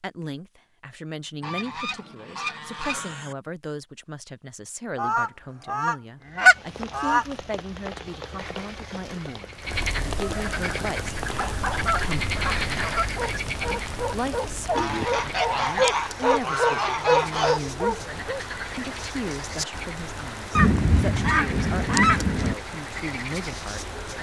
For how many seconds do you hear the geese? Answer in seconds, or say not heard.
11 s.